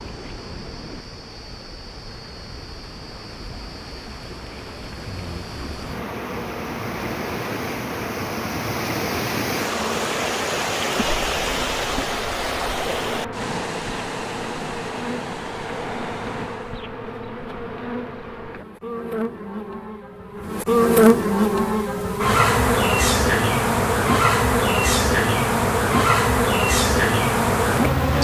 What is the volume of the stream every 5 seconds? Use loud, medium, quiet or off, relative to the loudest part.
quiet, loud, loud, medium, off, off.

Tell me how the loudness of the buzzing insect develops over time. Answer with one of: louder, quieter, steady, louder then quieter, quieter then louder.
louder.